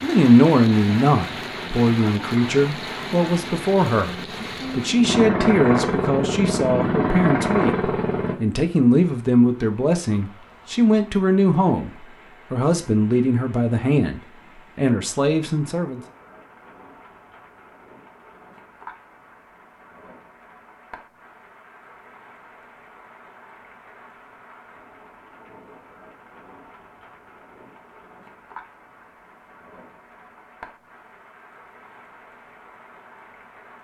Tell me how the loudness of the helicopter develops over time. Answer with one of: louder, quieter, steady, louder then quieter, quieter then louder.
louder.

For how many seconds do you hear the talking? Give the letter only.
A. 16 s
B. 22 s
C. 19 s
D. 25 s
A.